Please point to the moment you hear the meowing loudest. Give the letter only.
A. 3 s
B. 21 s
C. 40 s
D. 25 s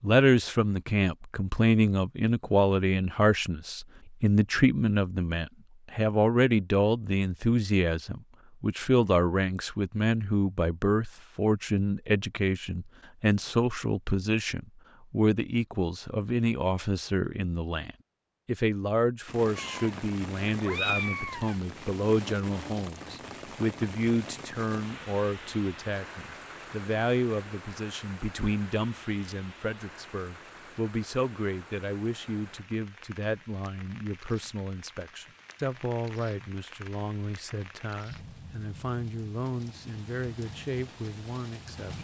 B.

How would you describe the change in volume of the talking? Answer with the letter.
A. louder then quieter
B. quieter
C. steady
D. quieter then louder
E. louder
B.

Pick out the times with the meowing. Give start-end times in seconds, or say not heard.
19.6-21.6.